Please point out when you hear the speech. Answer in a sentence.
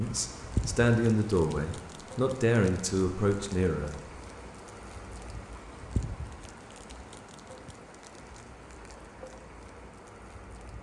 You can hear the speech from 0.0 to 4.0 s.